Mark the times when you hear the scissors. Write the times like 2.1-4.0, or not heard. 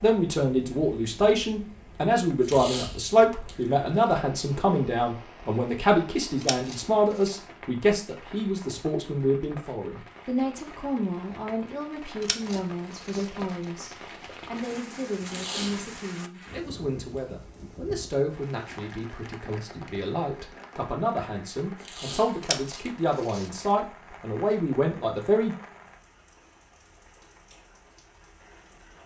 6.4-7.3, 12.2-13.4, 22.4-23.6.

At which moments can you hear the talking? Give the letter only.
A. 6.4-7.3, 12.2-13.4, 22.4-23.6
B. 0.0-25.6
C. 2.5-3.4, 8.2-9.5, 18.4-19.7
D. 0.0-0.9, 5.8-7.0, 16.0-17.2
B.